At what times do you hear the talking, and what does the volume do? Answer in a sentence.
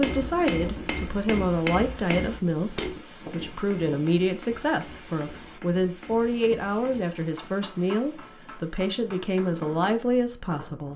The talking can be heard from 0.0 to 10.9 s, at a steady volume.